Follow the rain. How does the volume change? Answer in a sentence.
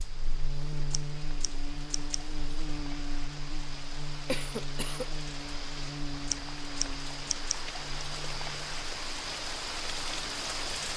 The volume of the rain goes up.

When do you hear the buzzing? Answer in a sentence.
The buzzing can be heard from 0.0 to 10.9 s.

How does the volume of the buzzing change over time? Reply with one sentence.
The volume of the buzzing goes down.